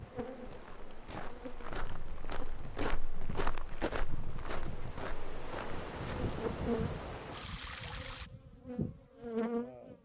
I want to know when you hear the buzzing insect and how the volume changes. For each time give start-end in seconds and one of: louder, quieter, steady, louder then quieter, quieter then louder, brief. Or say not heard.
0.0-9.9 louder.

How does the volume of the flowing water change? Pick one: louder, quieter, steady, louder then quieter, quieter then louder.
louder.